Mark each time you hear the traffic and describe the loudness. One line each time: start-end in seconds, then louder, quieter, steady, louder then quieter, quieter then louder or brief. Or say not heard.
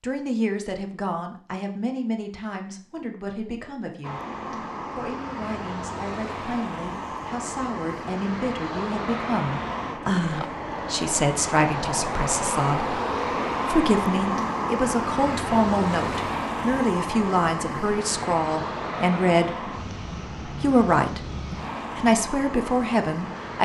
4.0-23.5 louder then quieter.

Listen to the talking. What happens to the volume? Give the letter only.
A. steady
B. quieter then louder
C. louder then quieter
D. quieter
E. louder
E.